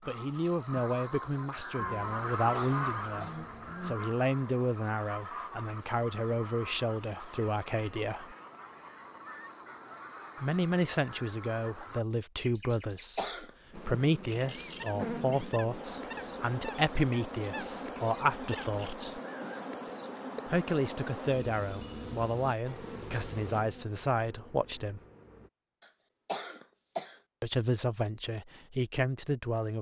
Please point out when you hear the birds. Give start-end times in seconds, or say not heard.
0.0-19.5.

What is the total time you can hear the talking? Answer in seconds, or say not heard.
24 s.